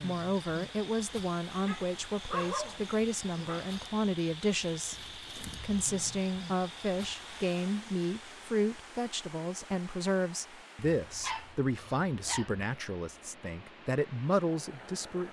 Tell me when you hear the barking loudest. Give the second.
2 s.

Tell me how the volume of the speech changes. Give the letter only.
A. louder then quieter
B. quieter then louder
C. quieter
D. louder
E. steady
E.